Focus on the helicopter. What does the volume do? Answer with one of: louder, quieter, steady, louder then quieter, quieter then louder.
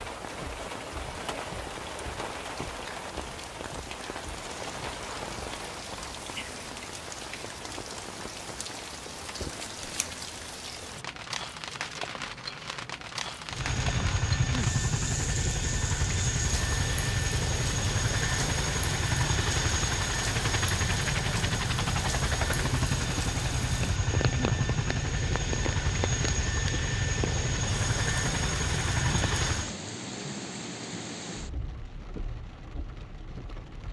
steady.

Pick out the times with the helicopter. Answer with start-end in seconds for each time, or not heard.
13.4-29.8.